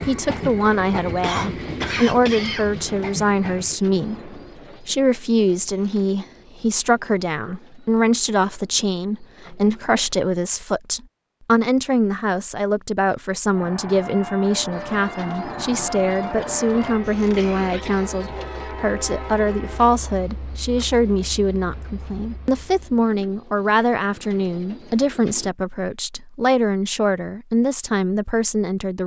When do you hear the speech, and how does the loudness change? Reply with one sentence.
The speech can be heard from 0.1 to 29.0 s, at a steady volume.